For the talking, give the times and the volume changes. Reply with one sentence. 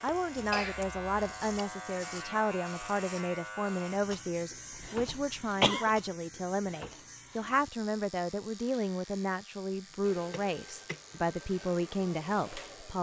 The talking can be heard from 0.0 to 12.9 s, at a steady volume.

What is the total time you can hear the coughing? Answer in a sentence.
The coughing can be heard for 3 seconds in total.